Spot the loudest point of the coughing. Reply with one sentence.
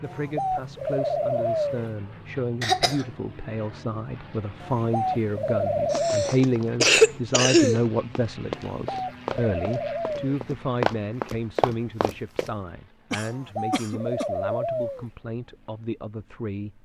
The loudest moment of the coughing is at 7 seconds.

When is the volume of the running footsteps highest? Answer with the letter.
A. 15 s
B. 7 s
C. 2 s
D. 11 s
D.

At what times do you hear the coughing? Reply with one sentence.
You can hear the coughing from 2.6 to 3.0 s, from 5.9 to 7.8 s and from 13.1 to 14.2 s.